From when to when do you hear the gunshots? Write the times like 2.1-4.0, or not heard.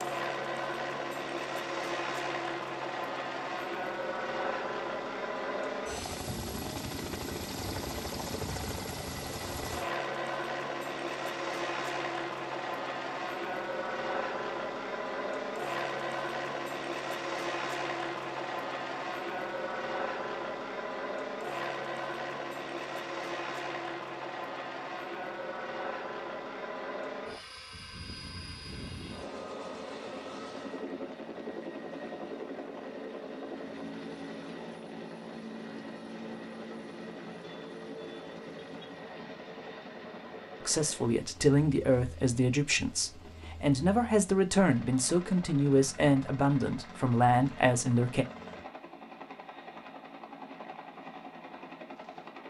not heard.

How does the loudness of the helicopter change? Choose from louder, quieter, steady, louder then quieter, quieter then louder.
quieter.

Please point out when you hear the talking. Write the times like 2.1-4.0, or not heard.
40.6-48.2.